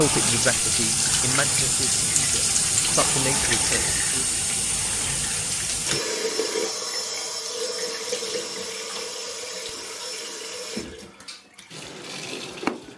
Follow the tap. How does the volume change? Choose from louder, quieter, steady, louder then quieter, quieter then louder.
quieter.